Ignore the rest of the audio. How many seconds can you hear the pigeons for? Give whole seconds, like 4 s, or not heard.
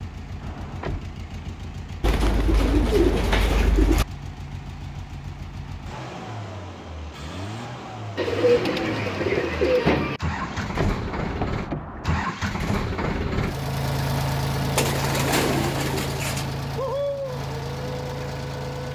6 s.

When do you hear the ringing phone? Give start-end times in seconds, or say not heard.
not heard.